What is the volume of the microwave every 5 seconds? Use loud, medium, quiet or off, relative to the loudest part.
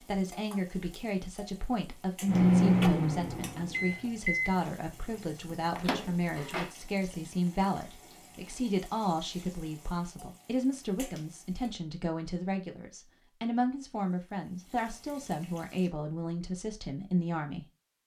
loud, quiet, off, off.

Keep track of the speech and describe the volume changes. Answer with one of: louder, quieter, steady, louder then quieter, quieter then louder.
steady.